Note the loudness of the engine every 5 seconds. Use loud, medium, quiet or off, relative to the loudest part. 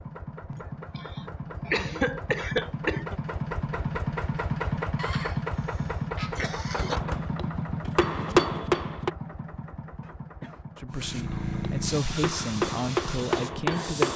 loud, loud, medium.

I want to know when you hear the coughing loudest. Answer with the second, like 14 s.
2 s.